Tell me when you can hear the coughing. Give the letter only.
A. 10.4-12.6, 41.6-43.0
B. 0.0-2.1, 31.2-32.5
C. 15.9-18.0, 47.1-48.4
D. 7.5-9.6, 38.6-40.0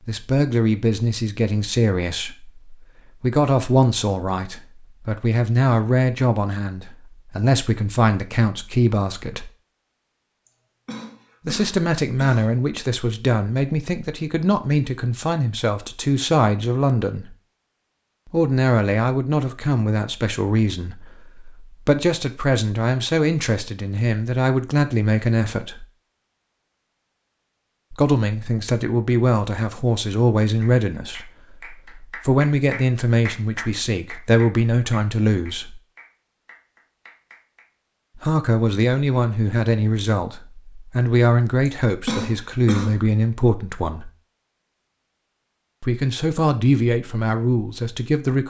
A.